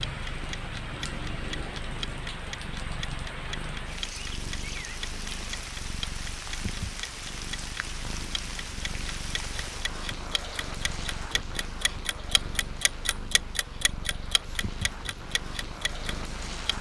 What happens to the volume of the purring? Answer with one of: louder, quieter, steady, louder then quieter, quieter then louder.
steady.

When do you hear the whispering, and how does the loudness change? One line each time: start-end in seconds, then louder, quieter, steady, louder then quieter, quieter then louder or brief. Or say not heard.
not heard.